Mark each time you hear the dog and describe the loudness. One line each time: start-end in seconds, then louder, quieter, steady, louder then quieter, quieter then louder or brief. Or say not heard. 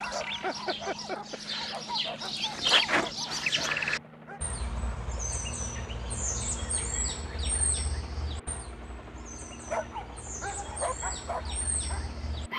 0.0-4.4 quieter
9.6-12.5 brief.